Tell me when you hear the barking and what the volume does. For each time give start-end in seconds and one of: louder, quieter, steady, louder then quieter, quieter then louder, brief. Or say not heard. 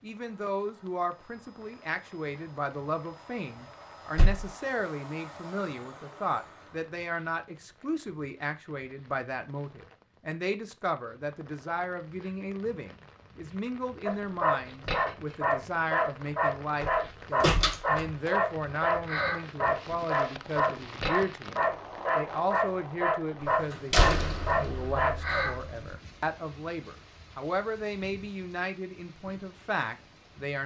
14.1-25.6 steady.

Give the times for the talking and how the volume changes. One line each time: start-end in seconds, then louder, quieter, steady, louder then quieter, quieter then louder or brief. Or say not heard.
0.0-30.6 steady.